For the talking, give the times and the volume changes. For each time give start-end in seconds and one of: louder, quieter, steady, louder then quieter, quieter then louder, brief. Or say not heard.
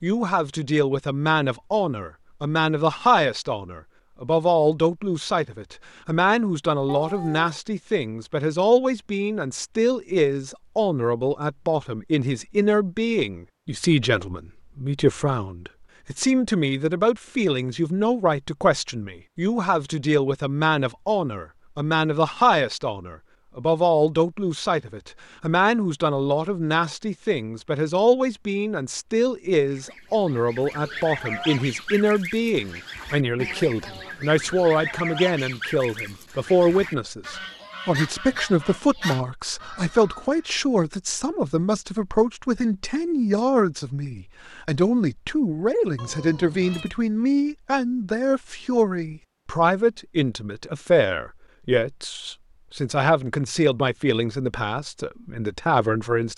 0.0-56.3 steady.